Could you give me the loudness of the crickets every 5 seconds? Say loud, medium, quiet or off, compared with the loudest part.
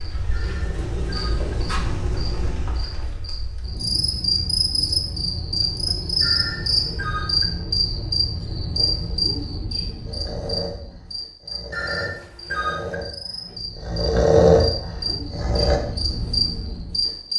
loud, loud, medium, loud.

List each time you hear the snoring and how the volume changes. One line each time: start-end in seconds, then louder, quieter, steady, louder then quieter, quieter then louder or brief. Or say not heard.
10.1-15.8 louder.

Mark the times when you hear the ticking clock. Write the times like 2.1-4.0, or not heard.
not heard.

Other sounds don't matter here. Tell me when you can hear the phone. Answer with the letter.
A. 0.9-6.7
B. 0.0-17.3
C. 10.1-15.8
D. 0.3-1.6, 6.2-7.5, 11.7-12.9
D.